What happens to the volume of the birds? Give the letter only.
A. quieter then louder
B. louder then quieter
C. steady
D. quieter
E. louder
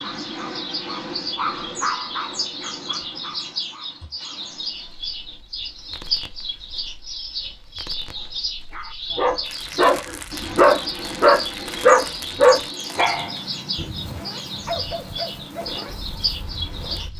C.